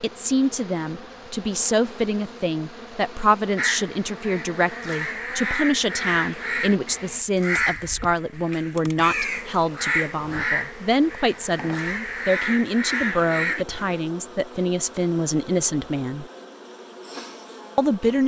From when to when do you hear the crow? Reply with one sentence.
You can hear the crow from 3.5 to 13.8 s.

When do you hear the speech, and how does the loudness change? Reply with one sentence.
You can hear the speech from 0.0 to 16.2 s, at a steady volume; and briefly from 17.8 to 18.2 s.